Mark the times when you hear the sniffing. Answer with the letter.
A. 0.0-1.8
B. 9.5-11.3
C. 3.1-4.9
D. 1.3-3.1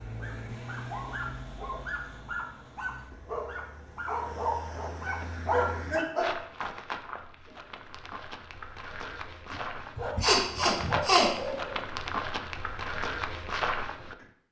B.